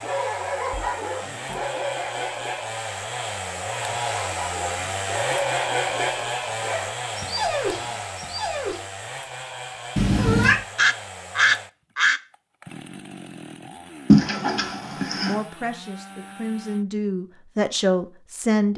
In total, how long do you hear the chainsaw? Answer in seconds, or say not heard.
17 s.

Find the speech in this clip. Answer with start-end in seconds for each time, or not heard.
15.2-18.7.